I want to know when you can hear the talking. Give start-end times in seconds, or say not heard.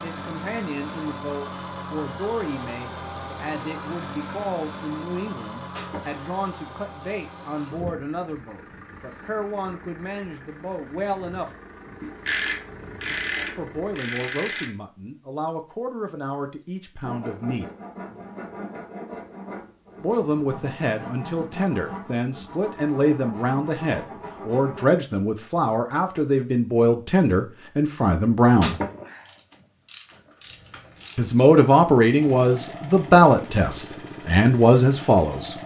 0.0-11.5, 13.6-17.6, 20.0-28.8, 31.1-35.5.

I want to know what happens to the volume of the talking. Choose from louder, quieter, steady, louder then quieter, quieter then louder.
louder.